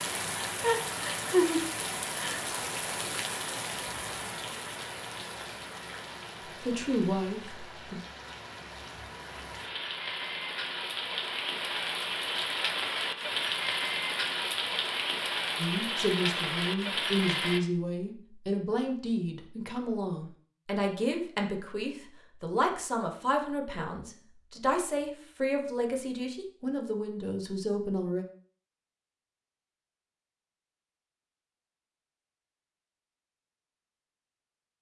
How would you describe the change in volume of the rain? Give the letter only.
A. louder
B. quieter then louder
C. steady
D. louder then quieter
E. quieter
B.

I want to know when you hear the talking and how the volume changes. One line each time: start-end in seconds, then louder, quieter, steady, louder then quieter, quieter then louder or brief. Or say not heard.
6.6-8.0 brief
15.6-28.2 steady.